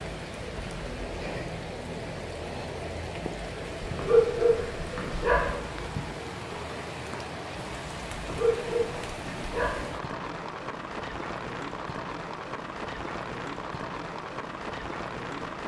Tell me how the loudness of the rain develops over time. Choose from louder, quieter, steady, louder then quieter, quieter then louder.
steady.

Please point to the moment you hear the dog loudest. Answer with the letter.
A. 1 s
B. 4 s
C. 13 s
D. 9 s
B.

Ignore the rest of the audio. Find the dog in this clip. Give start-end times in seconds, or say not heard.
3.8-5.5, 8.2-9.8.